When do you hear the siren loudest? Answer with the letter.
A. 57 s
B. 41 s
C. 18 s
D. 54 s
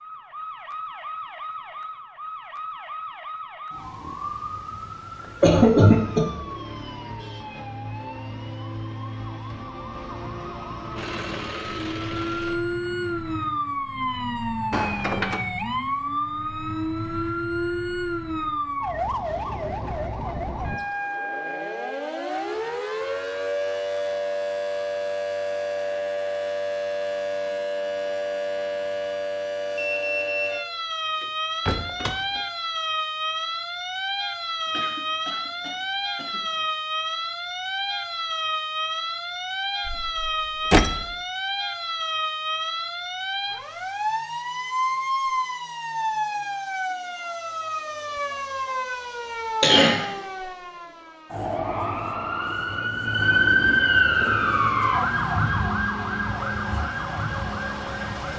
D.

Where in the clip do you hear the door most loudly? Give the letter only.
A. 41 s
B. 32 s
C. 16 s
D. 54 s
A.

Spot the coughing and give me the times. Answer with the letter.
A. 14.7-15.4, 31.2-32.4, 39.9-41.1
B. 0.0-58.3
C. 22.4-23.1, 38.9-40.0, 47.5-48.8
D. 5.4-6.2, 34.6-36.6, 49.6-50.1
D.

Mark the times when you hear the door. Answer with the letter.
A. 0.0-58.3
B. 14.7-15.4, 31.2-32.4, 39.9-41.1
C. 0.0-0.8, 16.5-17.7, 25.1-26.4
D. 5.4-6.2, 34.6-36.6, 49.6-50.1
B.